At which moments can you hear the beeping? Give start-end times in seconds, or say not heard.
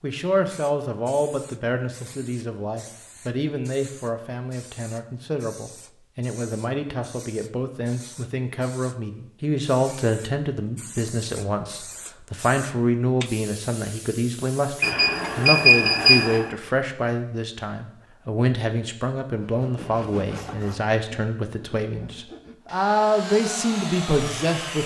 14.8-16.5.